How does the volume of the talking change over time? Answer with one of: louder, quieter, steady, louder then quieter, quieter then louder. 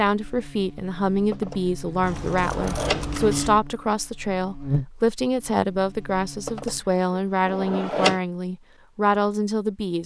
steady.